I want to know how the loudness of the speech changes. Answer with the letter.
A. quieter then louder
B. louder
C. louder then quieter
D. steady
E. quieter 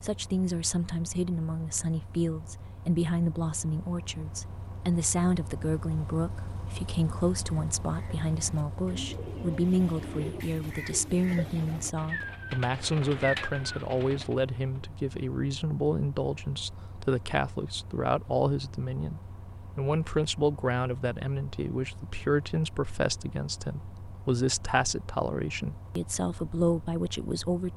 D.